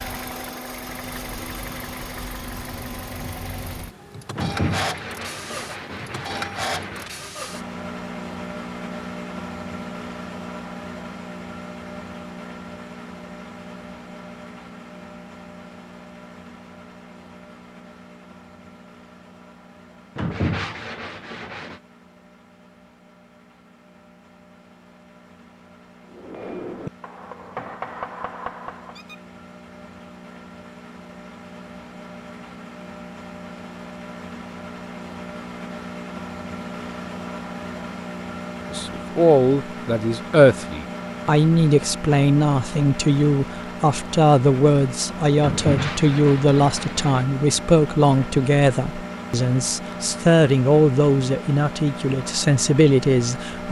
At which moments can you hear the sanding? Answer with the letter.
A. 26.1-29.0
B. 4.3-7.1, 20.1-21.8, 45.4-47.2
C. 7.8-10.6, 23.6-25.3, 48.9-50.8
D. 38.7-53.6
B.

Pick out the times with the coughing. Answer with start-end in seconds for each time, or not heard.
not heard.